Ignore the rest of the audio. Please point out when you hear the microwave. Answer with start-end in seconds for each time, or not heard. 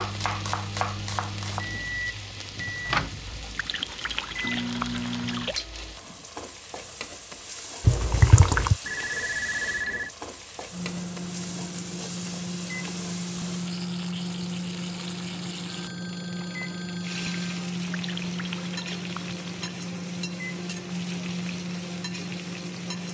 0.0-5.5, 10.7-23.0.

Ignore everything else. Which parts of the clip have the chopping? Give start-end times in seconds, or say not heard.
0.0-1.6.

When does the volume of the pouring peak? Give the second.
8 s.